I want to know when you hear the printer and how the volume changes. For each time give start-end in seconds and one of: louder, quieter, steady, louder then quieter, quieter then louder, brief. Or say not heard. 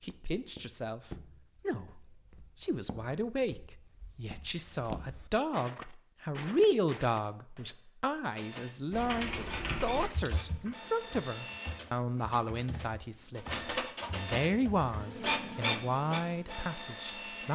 8.3-17.5 louder.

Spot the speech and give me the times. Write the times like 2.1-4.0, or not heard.
0.0-17.5.